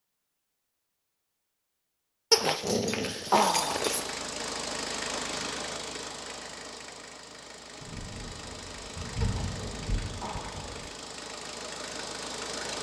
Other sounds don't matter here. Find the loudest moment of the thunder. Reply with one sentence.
The volume of the thunder peaks at 9 seconds.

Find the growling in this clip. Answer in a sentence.
The growling can be heard from 2.3 to 4.0 s and from 9.2 to 10.7 s.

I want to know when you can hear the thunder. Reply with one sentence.
You can hear the thunder from 7.8 to 10.9 s.